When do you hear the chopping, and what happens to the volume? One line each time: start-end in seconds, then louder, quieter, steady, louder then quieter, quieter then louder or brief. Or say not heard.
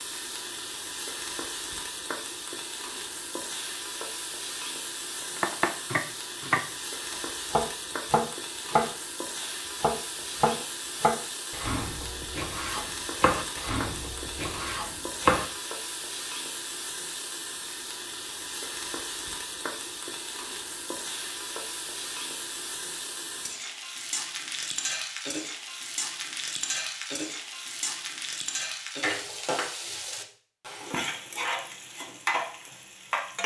5.2-6.6 brief
7.5-15.4 quieter.